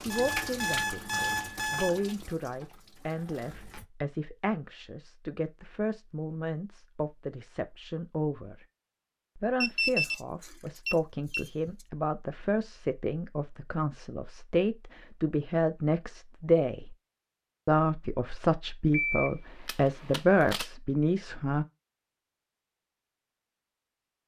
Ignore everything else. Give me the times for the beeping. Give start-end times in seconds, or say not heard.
0.1-2.1, 9.6-11.8, 18.9-20.7.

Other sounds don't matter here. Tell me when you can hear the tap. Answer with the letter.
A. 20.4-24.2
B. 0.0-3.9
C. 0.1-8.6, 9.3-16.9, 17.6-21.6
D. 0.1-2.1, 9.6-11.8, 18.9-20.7
B.